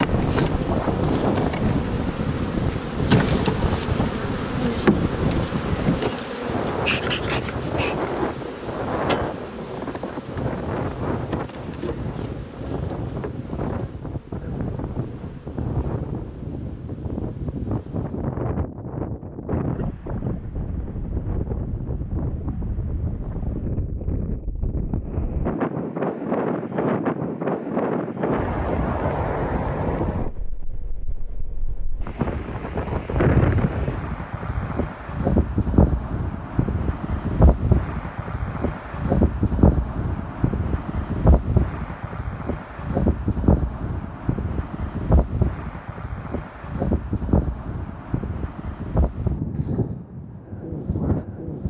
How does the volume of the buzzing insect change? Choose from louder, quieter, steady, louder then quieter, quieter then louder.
quieter.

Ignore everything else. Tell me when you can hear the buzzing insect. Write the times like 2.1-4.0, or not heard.
0.0-18.4.